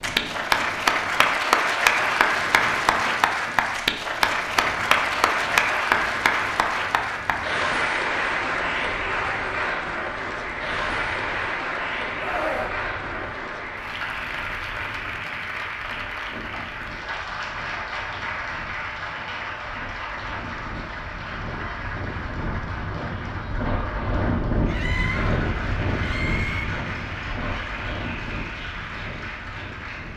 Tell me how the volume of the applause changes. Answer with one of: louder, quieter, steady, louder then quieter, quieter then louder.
quieter.